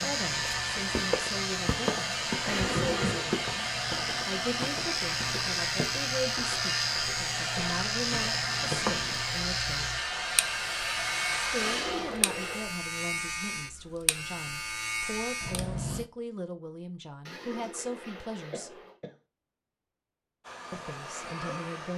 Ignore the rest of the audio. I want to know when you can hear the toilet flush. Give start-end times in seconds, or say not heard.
2.5-3.2, 11.6-12.8, 17.2-18.9.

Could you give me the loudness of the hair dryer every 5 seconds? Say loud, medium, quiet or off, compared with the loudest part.
loud, loud, loud, off, medium.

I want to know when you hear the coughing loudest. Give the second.
3 s.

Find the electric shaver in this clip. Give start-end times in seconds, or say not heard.
0.0-16.1.